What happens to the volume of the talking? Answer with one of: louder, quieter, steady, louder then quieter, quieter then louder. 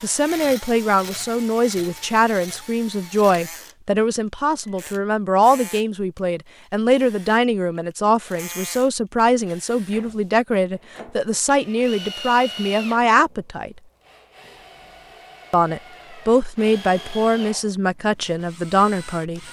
steady.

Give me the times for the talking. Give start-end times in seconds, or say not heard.
0.0-13.8, 15.5-19.4.